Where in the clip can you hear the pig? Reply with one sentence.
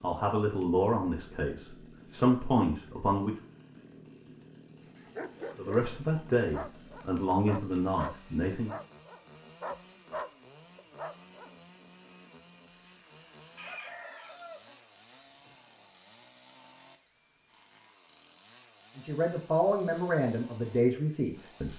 You can't hear the pig here.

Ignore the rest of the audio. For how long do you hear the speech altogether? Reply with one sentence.
The speech can be heard for 9 seconds in total.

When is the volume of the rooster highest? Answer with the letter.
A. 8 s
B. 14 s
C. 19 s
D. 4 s
B.